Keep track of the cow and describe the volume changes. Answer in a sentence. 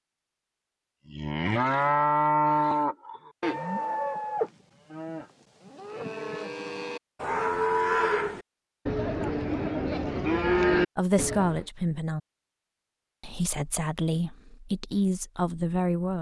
The volume of the cow goes down, then up.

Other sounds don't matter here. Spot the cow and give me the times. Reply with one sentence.
The cow can be heard from 1.1 to 11.7 s.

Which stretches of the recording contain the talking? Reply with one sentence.
The talking can be heard from 10.9 to 12.2 s and from 13.2 to 16.1 s.